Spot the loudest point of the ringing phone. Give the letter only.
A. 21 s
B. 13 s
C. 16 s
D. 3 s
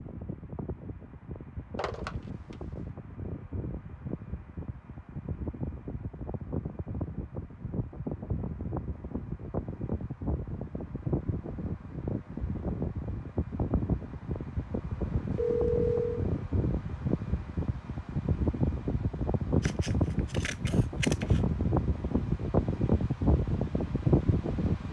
C.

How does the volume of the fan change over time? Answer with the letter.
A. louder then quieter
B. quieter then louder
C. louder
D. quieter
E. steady
C.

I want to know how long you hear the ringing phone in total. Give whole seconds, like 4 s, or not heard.
2 s.